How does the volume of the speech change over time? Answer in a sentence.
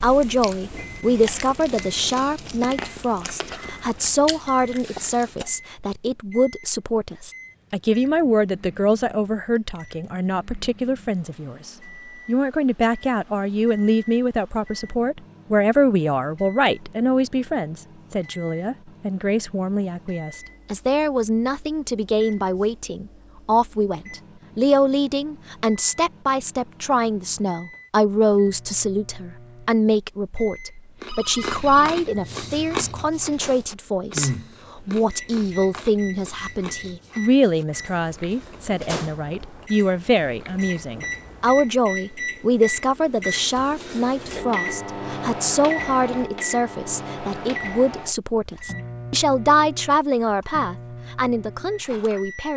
The volume of the speech stays about the same.